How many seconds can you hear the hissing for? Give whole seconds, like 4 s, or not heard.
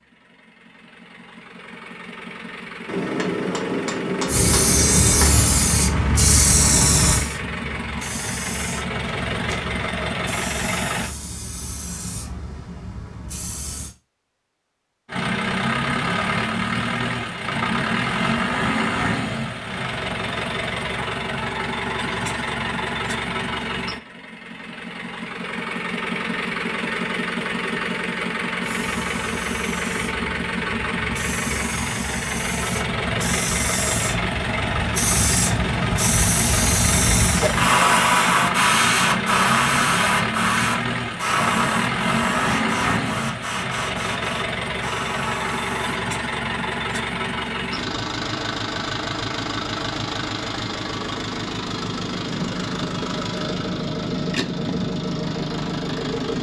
27 s.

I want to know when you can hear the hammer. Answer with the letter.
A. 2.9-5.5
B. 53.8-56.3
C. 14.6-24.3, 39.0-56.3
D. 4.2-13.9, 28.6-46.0
A.